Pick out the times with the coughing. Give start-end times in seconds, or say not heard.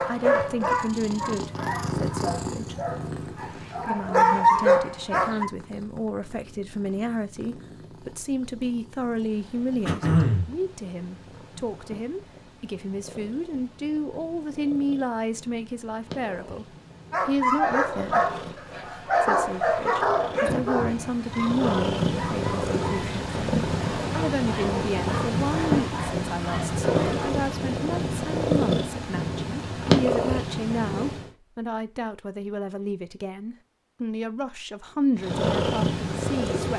9.8-10.5, 20.4-21.0.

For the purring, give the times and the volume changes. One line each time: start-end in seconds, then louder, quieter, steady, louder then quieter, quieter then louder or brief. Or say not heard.
0.0-31.3 quieter then louder
35.1-36.7 brief.